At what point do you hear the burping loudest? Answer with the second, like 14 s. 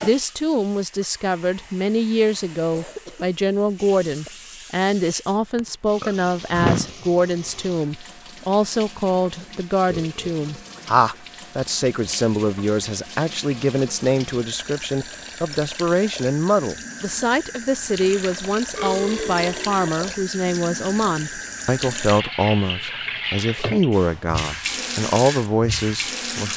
7 s.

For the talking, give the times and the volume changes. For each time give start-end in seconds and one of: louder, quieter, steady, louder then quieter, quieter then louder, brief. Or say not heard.
0.0-26.5 steady.